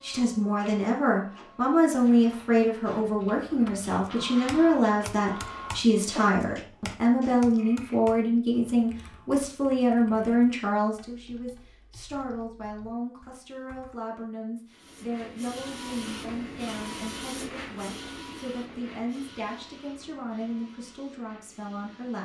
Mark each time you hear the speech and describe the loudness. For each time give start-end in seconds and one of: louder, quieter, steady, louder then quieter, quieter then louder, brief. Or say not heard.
0.0-22.2 quieter.